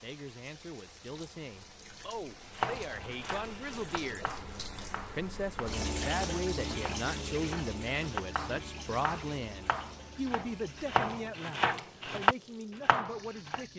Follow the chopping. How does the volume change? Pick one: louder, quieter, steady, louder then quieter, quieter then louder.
quieter then louder.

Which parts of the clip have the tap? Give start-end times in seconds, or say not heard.
0.0-13.7.